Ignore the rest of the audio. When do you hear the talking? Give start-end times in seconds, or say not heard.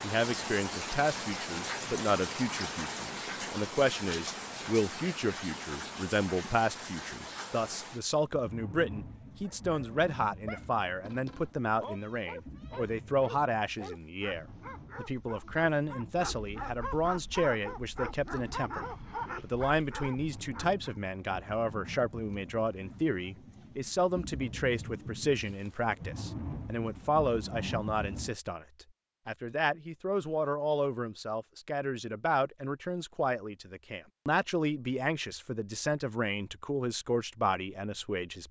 0.0-38.4.